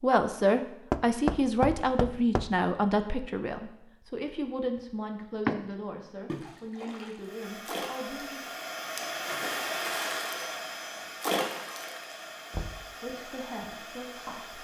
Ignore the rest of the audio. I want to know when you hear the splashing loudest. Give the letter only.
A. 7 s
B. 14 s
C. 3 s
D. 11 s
D.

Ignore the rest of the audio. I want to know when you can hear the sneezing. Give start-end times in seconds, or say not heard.
not heard.